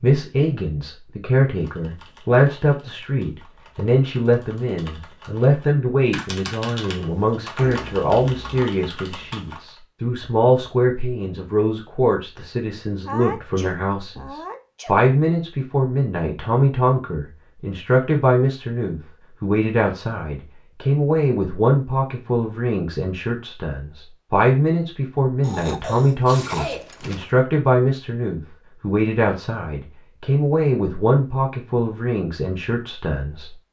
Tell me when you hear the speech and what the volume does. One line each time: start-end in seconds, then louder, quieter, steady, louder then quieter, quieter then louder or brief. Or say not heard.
0.0-33.5 steady.